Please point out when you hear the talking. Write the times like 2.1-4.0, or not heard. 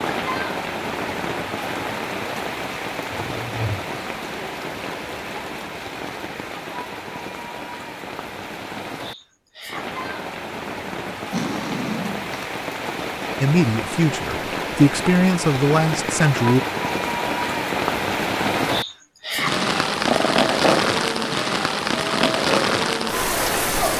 13.4-16.6.